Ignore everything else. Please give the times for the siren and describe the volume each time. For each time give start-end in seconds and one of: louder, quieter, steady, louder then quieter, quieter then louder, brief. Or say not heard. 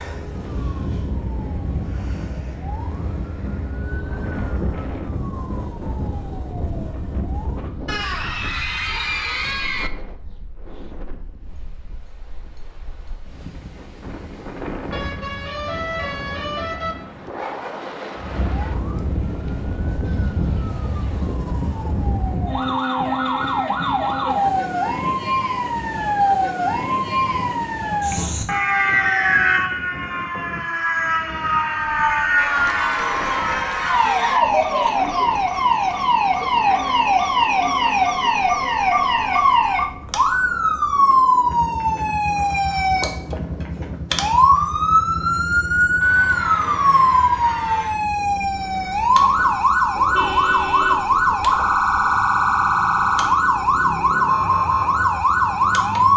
0.0-7.8 steady
18.1-56.1 louder.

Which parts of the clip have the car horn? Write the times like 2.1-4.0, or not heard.
14.9-16.9, 20.0-21.4, 50.0-51.8.